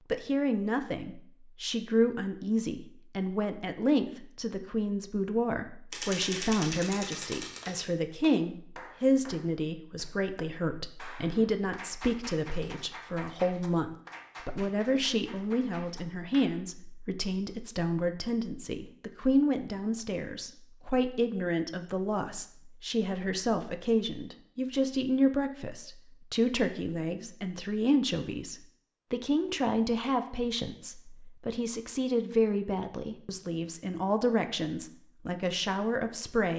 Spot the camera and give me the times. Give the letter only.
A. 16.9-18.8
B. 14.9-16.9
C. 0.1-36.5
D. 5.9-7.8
D.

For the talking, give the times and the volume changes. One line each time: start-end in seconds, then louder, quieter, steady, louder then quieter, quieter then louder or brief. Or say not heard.
0.1-36.5 steady.